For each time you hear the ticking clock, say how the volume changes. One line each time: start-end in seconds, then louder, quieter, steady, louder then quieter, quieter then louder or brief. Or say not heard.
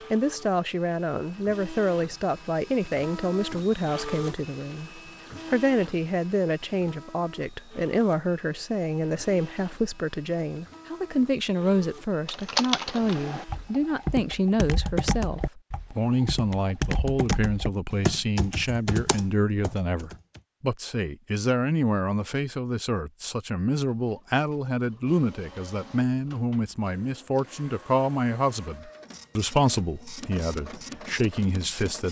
not heard.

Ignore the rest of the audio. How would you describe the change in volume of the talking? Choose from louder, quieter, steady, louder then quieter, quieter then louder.
steady.